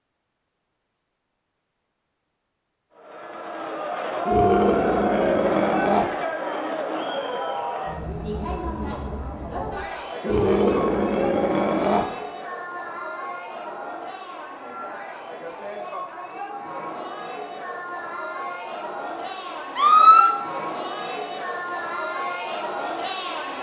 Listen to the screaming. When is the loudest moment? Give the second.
20 s.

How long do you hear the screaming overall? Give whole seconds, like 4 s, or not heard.
4 s.